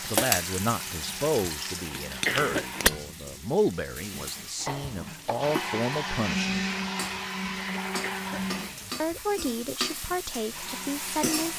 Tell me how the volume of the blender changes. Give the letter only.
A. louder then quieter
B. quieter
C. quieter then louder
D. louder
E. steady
A.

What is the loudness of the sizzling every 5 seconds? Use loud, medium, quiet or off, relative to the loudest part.
loud, medium, loud.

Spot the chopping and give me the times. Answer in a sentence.
You can hear the chopping from 4.5 to 5.5 s.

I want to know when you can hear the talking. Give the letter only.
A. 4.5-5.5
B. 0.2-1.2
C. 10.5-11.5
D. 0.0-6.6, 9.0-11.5
D.